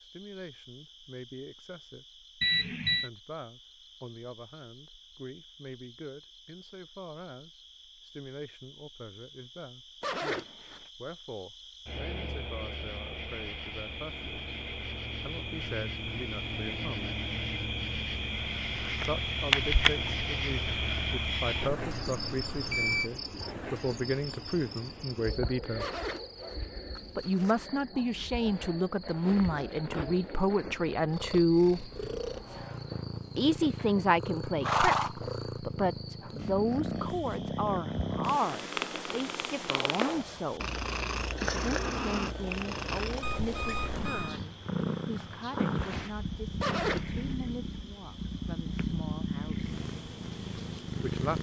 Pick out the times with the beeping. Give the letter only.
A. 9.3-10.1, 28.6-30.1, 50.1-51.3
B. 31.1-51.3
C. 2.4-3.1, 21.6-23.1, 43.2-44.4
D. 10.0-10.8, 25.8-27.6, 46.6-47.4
C.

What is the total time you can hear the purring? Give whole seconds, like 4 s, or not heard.
20 s.